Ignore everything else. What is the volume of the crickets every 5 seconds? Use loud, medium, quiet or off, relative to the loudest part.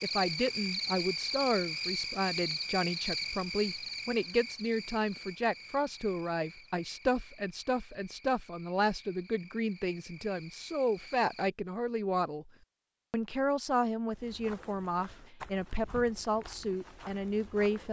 loud, quiet, quiet, off.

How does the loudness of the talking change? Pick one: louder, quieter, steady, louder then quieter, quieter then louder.
steady.